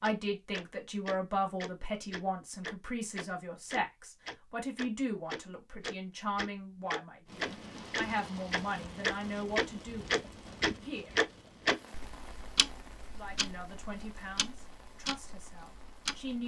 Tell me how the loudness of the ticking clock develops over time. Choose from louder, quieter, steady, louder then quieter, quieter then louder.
louder then quieter.